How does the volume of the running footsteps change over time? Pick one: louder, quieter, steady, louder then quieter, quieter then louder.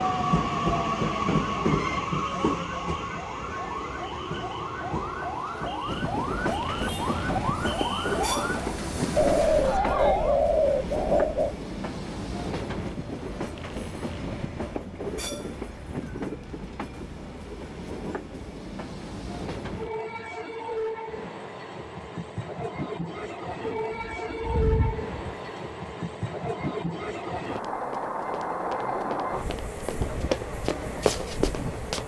louder.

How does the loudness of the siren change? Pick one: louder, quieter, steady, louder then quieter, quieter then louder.
louder.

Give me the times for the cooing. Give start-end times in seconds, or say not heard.
9.2-11.6, 23.6-25.5.